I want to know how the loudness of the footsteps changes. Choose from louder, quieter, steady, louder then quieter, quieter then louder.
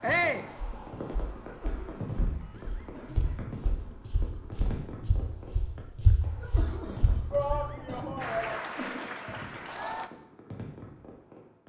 louder.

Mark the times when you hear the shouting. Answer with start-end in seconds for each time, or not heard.
0.0-0.5, 7.3-8.6.